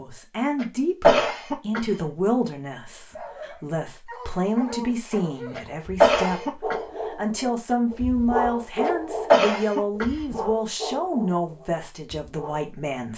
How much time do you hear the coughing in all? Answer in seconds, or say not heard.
4 s.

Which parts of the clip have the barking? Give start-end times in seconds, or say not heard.
3.1-12.7.